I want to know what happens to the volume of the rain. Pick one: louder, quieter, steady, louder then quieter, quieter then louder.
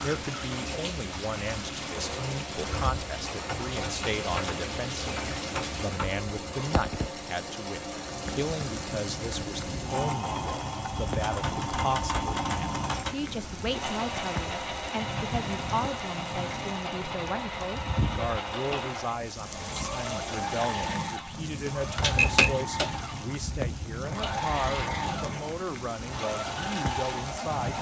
steady.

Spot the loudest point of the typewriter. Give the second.
22 s.